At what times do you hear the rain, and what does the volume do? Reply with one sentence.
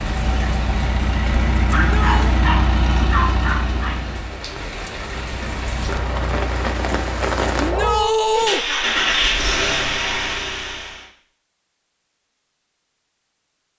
The rain can be heard from 0.0 to 7.8 s, getting louder.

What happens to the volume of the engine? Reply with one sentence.
The volume of the engine goes down, then up.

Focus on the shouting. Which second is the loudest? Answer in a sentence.
The loudest moment of the shouting is at 8 seconds.